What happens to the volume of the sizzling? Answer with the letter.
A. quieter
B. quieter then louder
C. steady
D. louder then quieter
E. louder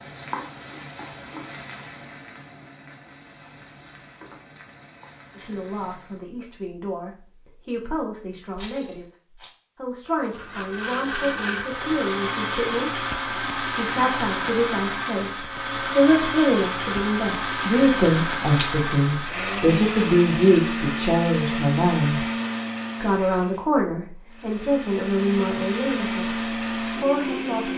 A.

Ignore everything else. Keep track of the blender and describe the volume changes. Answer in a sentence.
The loudness of the blender stays about the same.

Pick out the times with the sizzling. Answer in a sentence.
You can hear the sizzling from 0.0 to 6.2 s.